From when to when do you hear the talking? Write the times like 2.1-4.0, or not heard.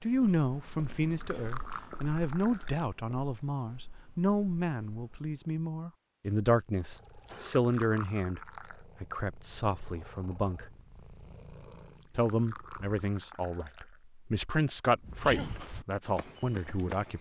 0.0-10.7, 12.2-17.1.